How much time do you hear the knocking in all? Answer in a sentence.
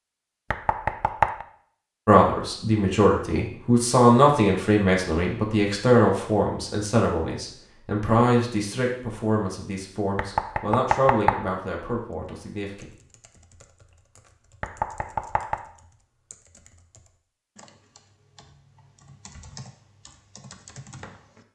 You can hear the knocking for 3 seconds altogether.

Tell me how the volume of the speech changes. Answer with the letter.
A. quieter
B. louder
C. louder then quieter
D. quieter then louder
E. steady
A.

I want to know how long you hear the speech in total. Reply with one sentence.
The speech can be heard for 11 seconds in total.